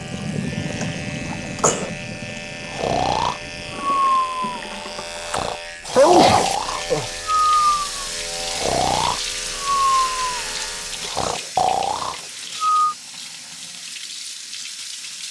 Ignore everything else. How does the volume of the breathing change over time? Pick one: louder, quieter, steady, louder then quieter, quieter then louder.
steady.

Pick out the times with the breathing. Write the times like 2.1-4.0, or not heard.
2.7-12.9.